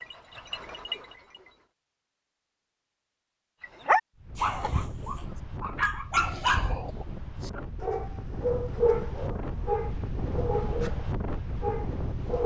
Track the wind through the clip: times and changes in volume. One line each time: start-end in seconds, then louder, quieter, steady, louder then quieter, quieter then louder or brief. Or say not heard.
4.2-12.4 louder.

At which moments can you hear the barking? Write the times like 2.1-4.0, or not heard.
0.0-1.5, 3.6-12.4.